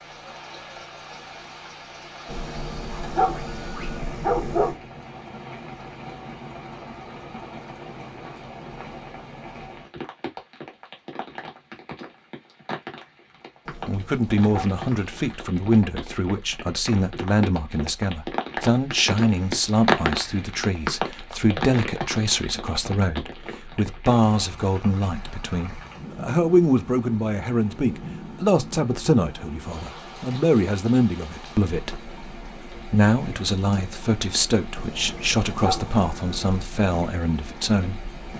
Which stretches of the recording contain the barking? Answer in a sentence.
You can hear the barking from 2.2 to 4.8 s, from 13.7 to 15.5 s and from 34.8 to 36.6 s.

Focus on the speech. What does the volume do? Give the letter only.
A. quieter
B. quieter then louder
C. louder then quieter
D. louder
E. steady
E.